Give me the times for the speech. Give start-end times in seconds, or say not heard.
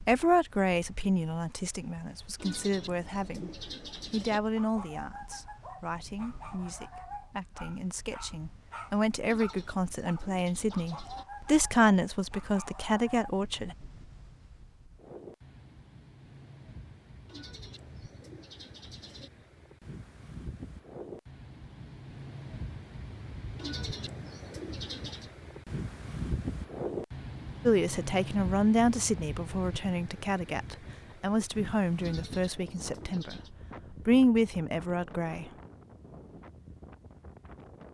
0.0-3.5, 4.1-13.8, 27.6-35.5.